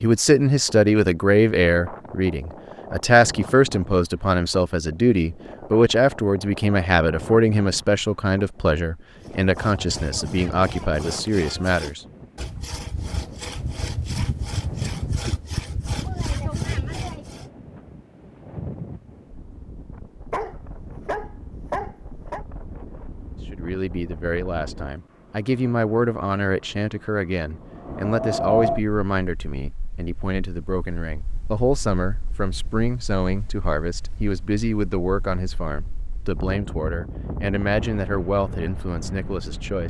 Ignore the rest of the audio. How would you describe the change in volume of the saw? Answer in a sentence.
The loudness of the saw goes up.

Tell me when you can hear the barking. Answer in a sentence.
You can hear the barking from 20.3 to 22.4 s.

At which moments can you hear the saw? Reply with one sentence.
You can hear the saw from 9.2 to 17.4 s.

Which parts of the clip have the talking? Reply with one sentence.
The talking can be heard from 0.0 to 12.0 s and from 23.5 to 39.8 s.